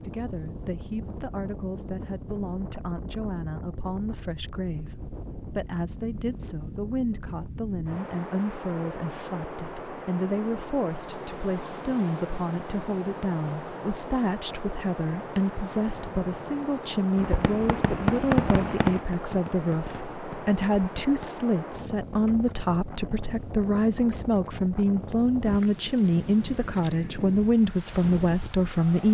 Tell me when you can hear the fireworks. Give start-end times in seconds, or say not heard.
17.1-21.4.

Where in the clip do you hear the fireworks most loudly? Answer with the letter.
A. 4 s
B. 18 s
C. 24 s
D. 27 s
B.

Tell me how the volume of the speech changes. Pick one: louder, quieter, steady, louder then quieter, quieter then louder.
louder.